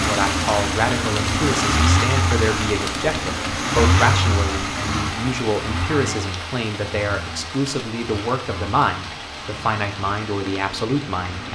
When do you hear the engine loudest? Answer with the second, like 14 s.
2 s.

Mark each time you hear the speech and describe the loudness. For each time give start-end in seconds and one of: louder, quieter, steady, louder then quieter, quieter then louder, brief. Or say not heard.
0.0-11.5 steady.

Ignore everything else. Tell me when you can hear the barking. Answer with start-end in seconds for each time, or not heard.
not heard.